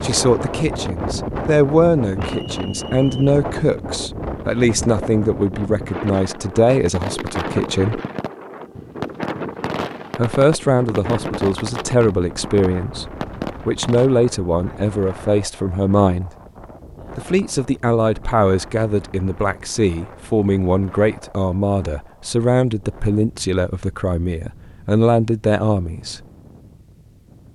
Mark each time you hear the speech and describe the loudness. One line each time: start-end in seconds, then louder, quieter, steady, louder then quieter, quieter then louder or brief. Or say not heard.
0.0-8.0 steady
10.2-13.1 brief
13.7-16.3 brief
17.1-26.2 steady.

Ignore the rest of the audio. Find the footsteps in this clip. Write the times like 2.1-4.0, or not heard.
not heard.